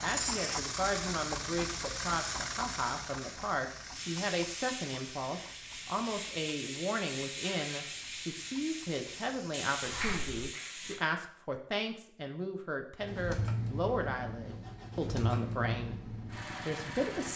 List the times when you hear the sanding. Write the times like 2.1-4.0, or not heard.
3.9-11.0.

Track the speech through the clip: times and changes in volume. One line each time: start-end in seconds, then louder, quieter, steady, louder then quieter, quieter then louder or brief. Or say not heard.
0.0-17.3 steady.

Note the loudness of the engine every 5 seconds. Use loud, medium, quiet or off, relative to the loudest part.
off, off, loud, loud.